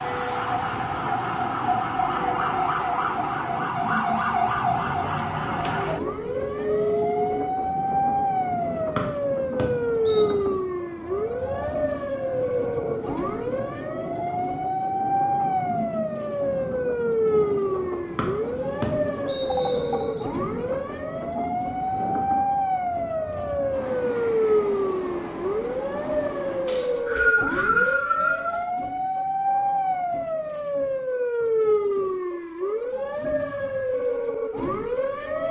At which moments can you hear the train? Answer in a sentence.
The train can be heard from 0.0 to 27.1 s.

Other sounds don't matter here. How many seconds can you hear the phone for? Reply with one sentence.
The phone can be heard for 3 seconds in total.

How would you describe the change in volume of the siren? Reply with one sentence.
The volume of the siren stays about the same.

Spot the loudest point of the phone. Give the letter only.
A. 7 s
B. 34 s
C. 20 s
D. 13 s
A.